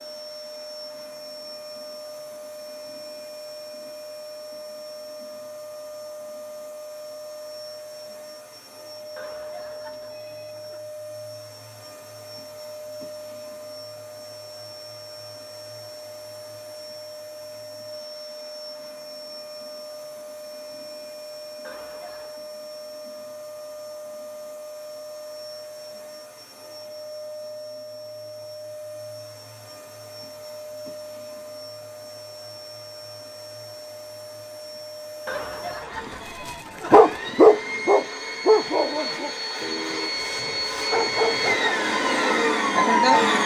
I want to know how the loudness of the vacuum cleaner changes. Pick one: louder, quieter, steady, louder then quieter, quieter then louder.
louder.